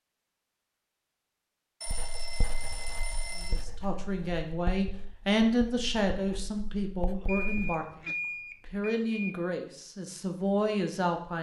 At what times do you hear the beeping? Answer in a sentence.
The beeping can be heard from 1.8 to 3.7 s and from 7.2 to 9.3 s.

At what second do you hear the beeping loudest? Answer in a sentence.
The volume of the beeping peaks at 8 seconds.